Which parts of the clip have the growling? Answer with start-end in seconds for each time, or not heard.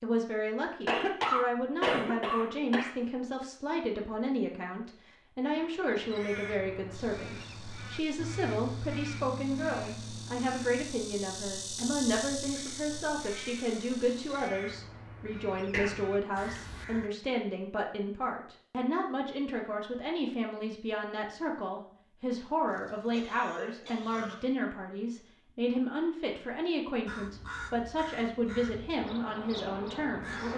not heard.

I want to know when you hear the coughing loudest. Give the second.
1 s.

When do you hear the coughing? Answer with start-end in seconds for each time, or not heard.
0.8-2.9, 15.7-16.4, 22.6-24.4.